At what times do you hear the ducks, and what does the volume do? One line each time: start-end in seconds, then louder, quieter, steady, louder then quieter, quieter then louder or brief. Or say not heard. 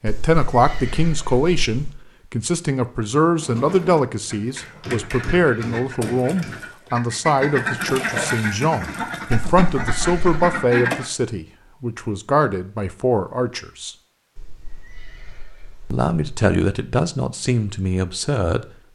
3.3-11.1 louder.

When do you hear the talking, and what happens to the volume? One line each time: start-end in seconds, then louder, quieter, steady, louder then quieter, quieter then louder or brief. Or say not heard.
0.0-13.9 steady
15.9-18.6 brief.